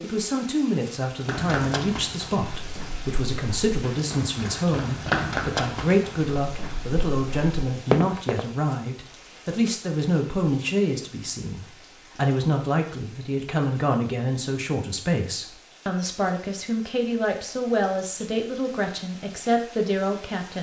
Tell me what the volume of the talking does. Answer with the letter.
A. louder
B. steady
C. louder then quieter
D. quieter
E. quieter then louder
B.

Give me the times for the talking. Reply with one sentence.
The talking can be heard from 0.0 to 20.5 s.